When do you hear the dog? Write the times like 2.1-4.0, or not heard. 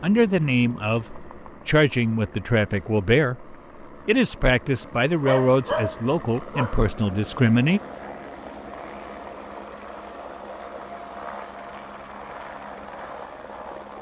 5.2-6.8.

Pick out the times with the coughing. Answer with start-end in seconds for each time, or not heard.
not heard.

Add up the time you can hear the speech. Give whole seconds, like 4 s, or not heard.
8 s.